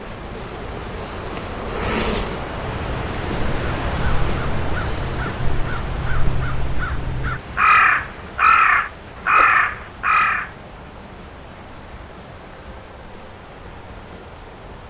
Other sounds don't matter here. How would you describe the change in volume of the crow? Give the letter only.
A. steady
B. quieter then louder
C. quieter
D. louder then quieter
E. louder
E.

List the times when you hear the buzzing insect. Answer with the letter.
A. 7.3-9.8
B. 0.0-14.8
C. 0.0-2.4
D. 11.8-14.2
C.